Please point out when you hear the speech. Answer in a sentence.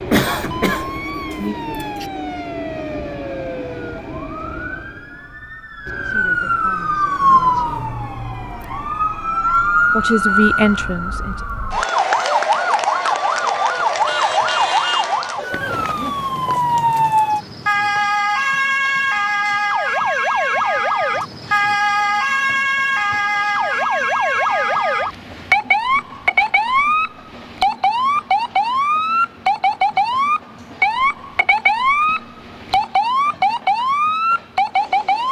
The speech can be heard from 6.0 to 8.0 s and from 9.8 to 11.4 s.